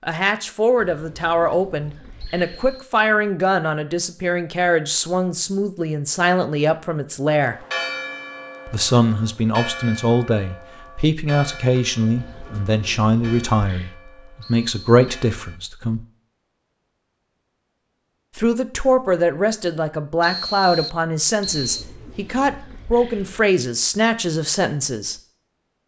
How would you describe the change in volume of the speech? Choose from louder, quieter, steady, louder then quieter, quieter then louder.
steady.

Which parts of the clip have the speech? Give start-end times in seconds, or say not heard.
0.0-7.5, 8.7-16.0, 18.4-25.1.